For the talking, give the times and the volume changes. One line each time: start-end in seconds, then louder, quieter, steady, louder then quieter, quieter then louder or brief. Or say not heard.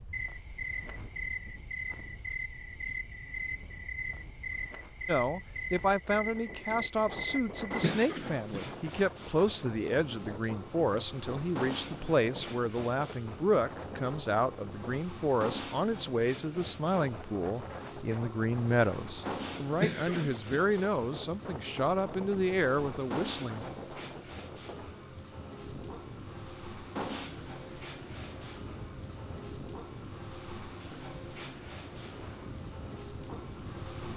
5.0-23.6 steady.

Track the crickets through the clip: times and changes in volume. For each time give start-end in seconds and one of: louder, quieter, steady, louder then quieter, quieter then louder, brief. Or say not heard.
0.1-34.1 steady.